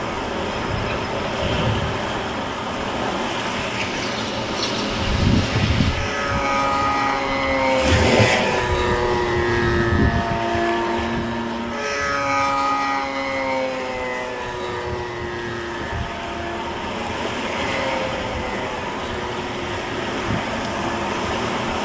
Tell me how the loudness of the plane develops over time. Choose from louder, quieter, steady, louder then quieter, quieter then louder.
louder then quieter.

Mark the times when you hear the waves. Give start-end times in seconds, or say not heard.
0.0-21.8.